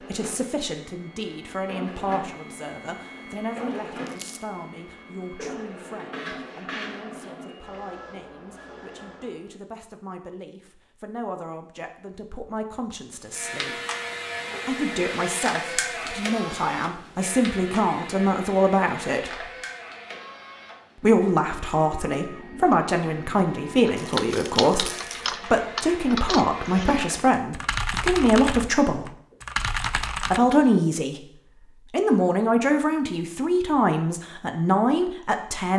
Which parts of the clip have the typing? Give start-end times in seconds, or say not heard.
23.9-30.4.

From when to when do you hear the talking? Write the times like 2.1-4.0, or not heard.
0.0-13.8, 14.7-19.5, 21.0-29.1, 30.3-31.2, 31.9-35.7.